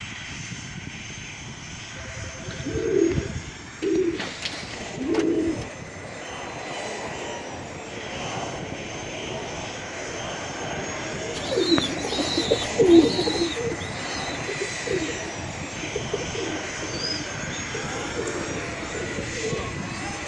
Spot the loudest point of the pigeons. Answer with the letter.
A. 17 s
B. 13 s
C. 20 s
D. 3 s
B.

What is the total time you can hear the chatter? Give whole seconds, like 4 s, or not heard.
16 s.